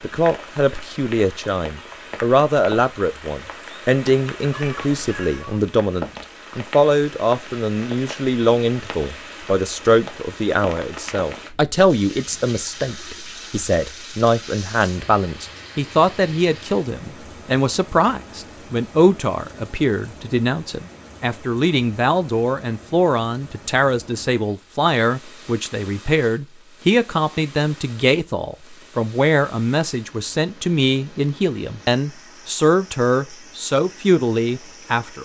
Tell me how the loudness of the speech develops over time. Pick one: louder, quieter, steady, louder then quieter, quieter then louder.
steady.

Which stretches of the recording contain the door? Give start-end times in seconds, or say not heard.
not heard.